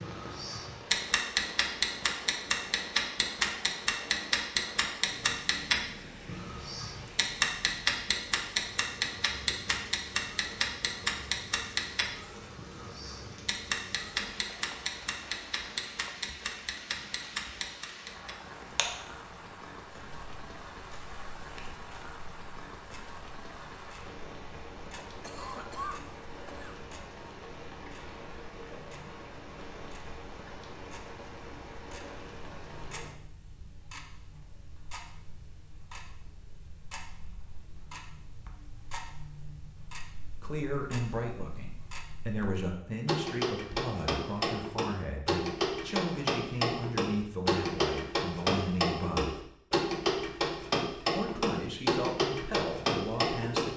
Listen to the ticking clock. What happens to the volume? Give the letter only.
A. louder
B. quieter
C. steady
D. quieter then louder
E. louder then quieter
D.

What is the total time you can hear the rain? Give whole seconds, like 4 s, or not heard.
33 s.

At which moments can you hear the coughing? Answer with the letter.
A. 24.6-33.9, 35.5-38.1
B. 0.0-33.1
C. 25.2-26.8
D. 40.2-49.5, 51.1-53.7
C.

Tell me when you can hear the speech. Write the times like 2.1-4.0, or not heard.
40.2-49.5, 51.1-53.7.